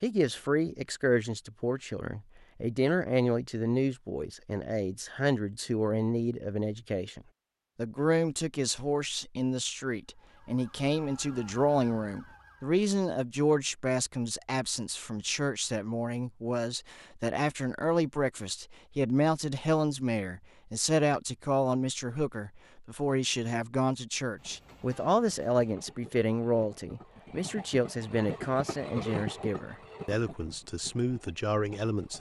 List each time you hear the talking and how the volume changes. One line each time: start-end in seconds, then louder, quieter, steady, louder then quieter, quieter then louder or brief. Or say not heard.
0.0-32.1 steady.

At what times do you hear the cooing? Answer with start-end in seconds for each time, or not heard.
not heard.